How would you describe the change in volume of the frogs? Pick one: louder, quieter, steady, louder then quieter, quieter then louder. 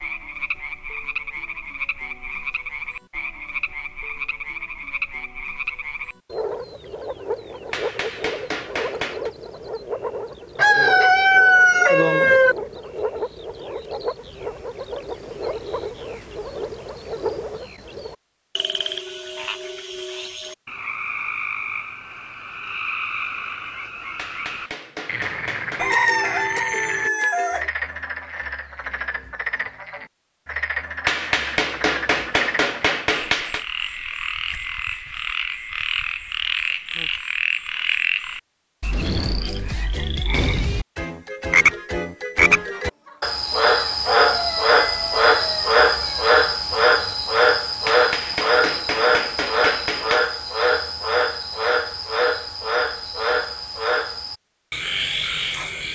louder.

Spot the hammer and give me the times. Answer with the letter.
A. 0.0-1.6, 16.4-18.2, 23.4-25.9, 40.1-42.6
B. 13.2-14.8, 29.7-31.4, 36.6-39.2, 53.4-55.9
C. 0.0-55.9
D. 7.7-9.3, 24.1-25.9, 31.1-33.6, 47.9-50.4
D.